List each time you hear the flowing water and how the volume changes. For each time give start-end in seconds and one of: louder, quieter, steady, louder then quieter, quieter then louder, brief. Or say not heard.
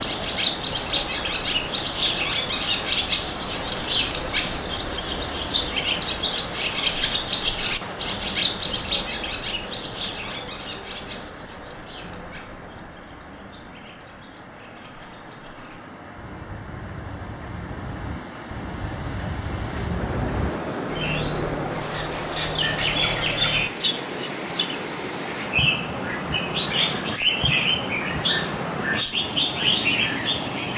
0.0-30.7 quieter then louder.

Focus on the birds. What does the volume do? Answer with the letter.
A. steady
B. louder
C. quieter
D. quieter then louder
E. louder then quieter
D.